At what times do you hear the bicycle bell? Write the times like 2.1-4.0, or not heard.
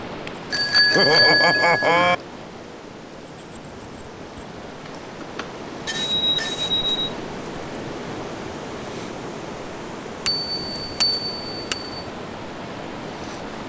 0.5-2.1, 5.2-7.2, 10.2-11.9.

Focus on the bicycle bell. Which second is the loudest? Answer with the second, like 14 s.
1 s.